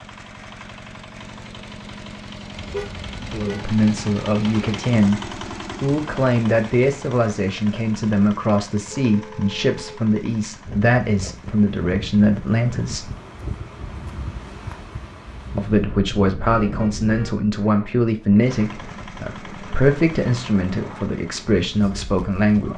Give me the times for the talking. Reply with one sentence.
You can hear the talking from 3.2 to 5.2 s, from 5.8 to 13.1 s and from 15.6 to 22.7 s.